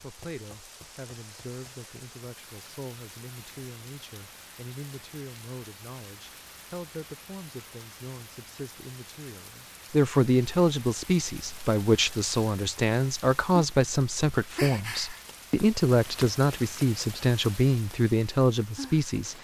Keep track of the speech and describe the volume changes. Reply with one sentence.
The volume of the speech goes up.